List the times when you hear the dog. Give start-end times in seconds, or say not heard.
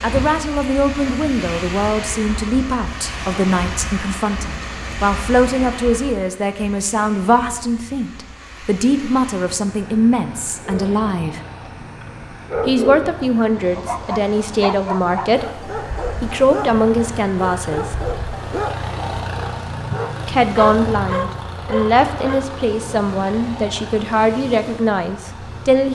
10.6-22.4.